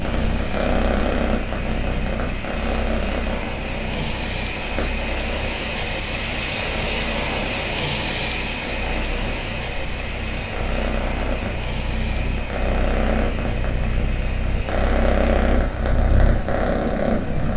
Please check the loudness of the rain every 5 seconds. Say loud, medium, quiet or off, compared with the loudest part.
medium, loud, medium, medium.